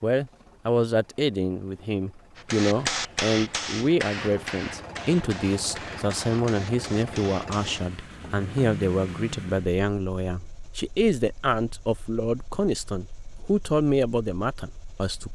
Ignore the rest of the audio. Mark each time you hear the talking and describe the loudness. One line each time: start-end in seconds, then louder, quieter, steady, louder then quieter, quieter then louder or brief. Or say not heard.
0.0-15.2 steady.